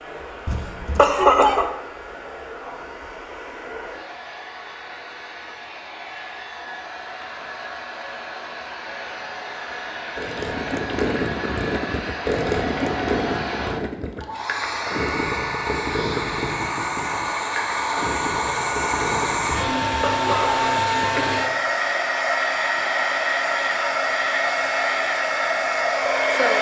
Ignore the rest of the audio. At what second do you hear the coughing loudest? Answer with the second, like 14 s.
1 s.